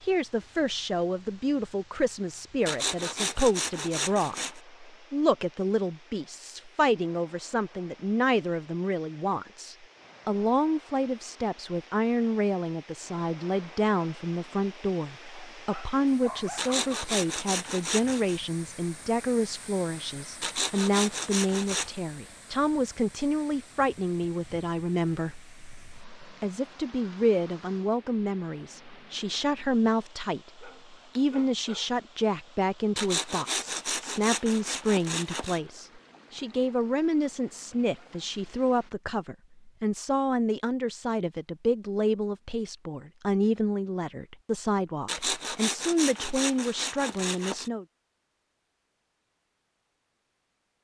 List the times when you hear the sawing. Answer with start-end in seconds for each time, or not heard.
2.6-4.6, 16.6-18.4, 20.4-21.9, 33.0-35.6, 45.0-47.7.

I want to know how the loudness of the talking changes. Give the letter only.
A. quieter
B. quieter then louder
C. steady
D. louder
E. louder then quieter
C.